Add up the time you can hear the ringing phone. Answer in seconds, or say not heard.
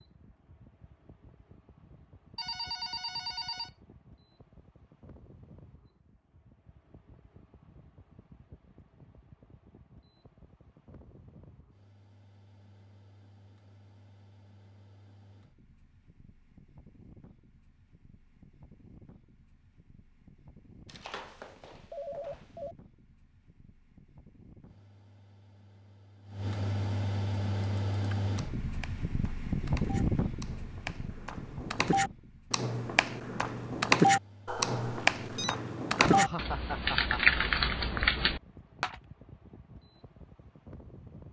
4 s.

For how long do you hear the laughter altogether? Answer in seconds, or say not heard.
2 s.